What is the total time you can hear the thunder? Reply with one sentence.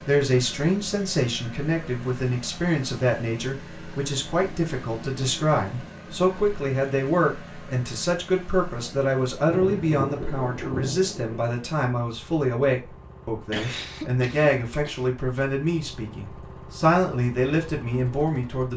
The thunder can be heard for 2 seconds in total.